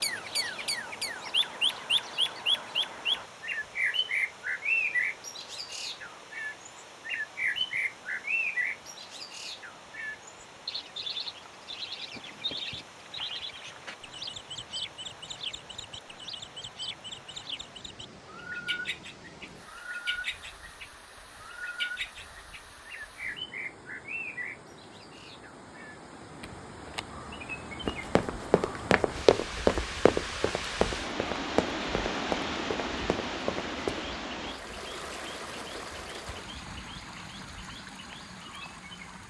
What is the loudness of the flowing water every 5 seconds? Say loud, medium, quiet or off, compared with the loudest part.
quiet, quiet, quiet, quiet, quiet, medium, loud, medium.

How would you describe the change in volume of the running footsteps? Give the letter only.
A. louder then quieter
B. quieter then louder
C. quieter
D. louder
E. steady
C.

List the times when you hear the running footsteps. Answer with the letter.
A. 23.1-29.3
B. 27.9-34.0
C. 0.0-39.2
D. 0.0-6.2
B.